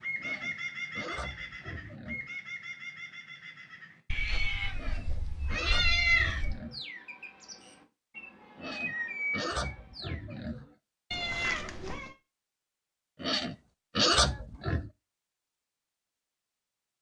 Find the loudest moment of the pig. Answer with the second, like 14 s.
14 s.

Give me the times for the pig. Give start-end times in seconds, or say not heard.
0.2-2.3, 4.8-6.8, 8.6-10.7, 13.2-14.9.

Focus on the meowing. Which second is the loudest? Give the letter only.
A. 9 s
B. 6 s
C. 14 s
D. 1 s
B.